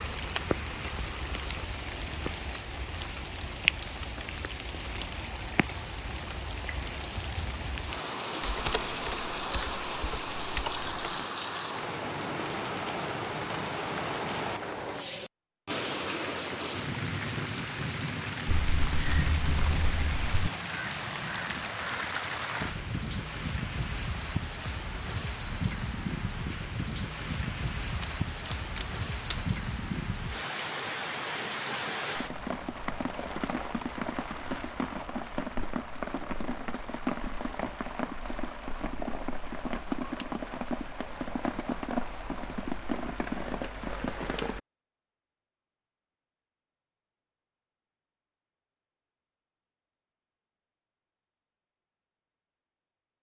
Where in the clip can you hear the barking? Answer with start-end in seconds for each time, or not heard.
not heard.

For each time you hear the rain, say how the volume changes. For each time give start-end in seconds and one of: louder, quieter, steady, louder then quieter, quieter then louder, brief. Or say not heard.
0.0-44.6 steady.